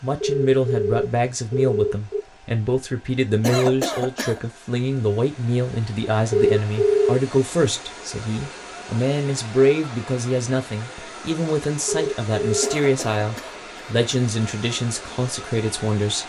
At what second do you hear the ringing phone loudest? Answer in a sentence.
The loudest moment of the ringing phone is at 7 seconds.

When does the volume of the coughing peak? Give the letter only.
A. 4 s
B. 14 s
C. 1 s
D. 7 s
A.